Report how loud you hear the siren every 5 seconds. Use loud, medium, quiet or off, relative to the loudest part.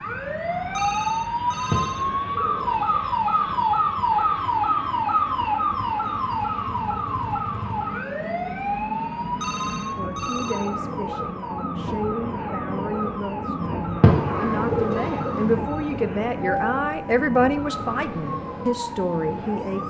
loud, loud, medium, medium.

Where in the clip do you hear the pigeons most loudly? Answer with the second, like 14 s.
14 s.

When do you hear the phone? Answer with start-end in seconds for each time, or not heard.
0.7-2.0, 9.4-10.8, 14.9-16.0.